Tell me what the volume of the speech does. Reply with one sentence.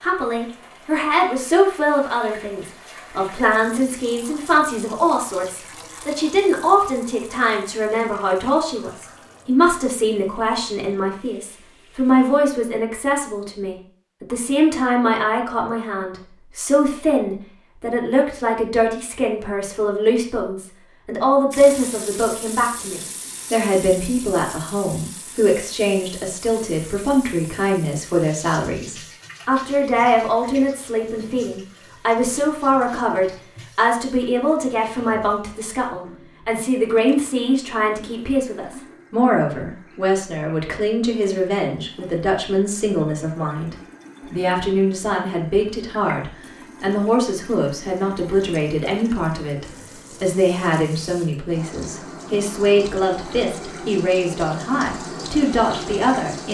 The loudness of the speech stays about the same.